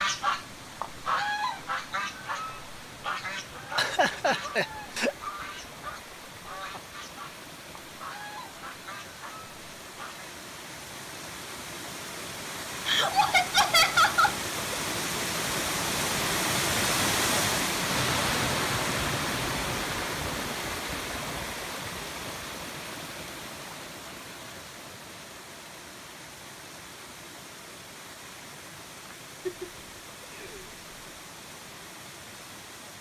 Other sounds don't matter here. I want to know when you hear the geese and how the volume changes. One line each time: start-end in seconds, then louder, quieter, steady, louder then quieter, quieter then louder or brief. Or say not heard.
0.0-10.3 quieter.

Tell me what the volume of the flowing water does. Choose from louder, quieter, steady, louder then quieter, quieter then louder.
louder then quieter.